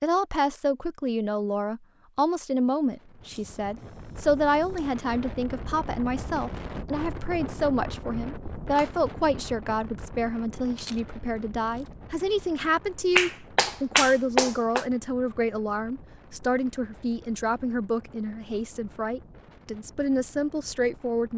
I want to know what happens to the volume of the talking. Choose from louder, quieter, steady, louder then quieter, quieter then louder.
steady.